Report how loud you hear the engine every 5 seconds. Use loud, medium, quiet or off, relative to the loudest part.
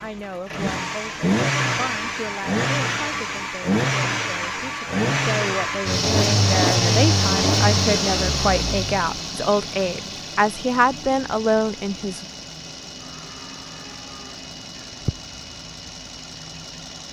loud, loud, quiet, quiet.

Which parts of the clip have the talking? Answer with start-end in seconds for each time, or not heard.
0.0-12.2.